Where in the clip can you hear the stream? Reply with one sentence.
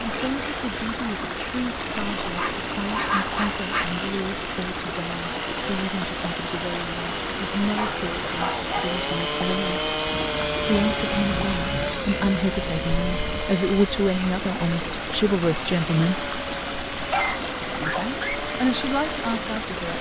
You can hear the stream from 0.0 to 19.9 s.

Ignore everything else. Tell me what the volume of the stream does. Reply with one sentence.
The loudness of the stream stays about the same.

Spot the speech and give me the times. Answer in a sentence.
You can hear the speech from 0.0 to 9.9 s, from 10.7 to 16.3 s and from 17.8 to 19.9 s.